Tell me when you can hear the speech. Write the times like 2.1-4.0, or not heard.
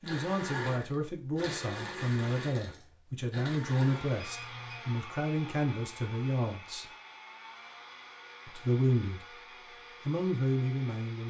0.0-6.8, 8.4-9.2, 10.1-11.2.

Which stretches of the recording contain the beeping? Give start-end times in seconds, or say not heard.
4.2-4.8.